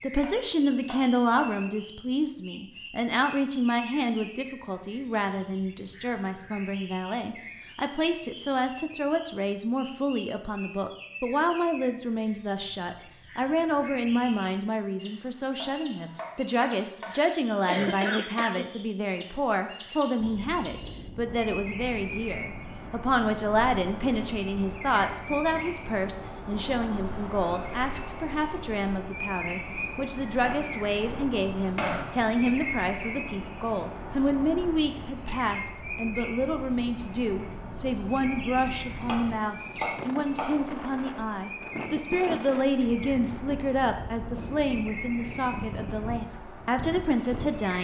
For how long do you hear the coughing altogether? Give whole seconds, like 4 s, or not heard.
2 s.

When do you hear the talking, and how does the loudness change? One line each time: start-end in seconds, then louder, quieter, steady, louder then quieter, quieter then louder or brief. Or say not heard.
0.0-47.8 steady.